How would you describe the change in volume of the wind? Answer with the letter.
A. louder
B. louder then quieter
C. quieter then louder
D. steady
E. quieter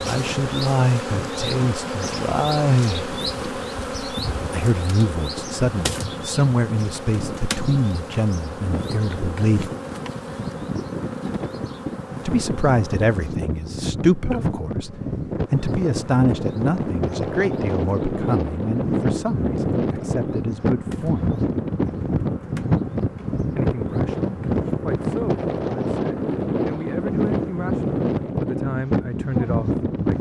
A.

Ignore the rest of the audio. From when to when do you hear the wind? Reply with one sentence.
The wind can be heard from 0.1 to 30.1 s.